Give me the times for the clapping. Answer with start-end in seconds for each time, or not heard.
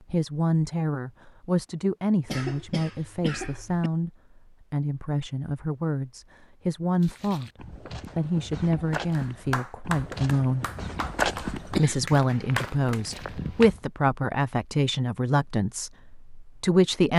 9.1-13.0.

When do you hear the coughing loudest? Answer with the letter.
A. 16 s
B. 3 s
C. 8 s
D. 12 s
D.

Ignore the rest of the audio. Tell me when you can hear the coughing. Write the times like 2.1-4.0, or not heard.
2.2-3.9, 11.8-12.2.